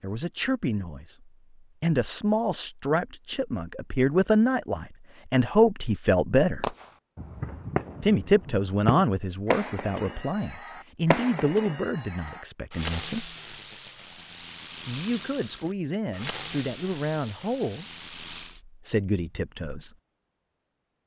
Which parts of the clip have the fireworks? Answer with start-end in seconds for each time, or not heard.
6.6-18.6.